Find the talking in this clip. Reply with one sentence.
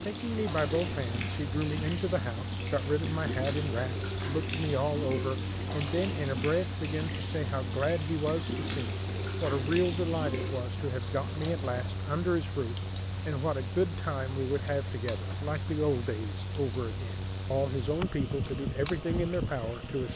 You can hear the talking from 0.0 to 20.1 s.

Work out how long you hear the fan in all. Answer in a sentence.
You can hear the fan for 20 seconds altogether.